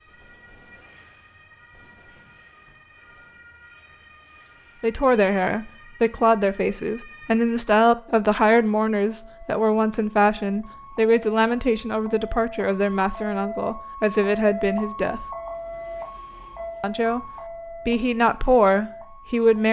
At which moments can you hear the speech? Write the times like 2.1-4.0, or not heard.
4.8-15.2, 16.8-19.6.